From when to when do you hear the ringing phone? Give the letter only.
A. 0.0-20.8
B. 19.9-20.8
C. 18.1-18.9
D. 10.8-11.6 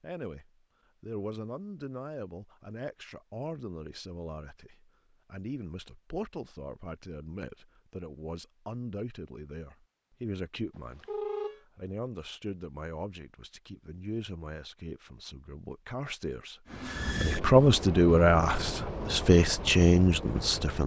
D.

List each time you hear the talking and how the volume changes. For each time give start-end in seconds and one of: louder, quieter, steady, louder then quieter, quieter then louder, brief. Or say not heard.
0.0-20.8 louder.